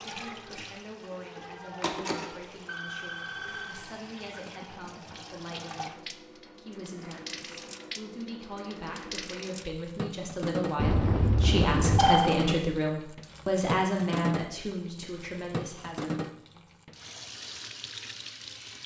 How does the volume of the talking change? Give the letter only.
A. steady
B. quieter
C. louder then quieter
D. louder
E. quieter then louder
D.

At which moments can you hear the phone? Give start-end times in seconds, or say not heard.
1.8-3.8, 10.8-12.3.